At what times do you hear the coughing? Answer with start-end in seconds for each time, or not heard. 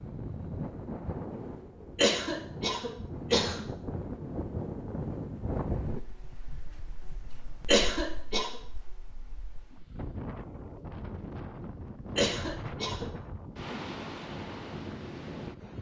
1.9-3.6, 7.7-8.5, 12.2-13.1.